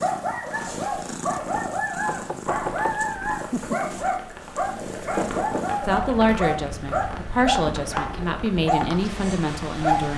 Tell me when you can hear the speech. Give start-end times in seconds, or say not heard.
5.8-10.1.